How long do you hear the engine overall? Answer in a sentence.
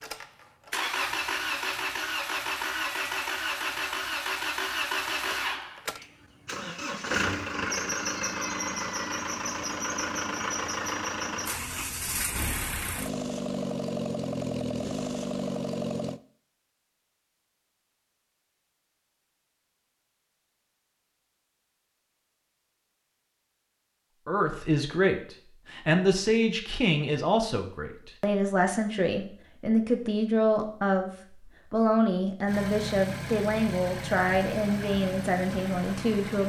The engine can be heard for 20 seconds in total.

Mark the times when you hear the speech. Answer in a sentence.
The speech can be heard from 24.2 to 31.1 s and from 31.7 to 36.4 s.